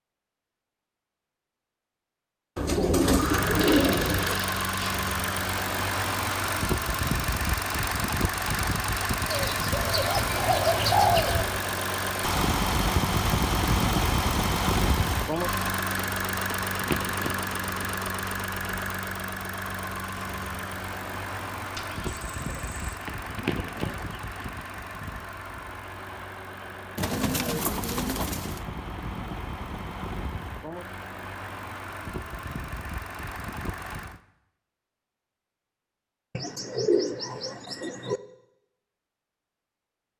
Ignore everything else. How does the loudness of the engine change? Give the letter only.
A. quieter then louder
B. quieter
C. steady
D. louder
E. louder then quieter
B.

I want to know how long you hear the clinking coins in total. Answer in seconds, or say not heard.
3 s.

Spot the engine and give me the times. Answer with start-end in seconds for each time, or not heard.
3.1-34.2.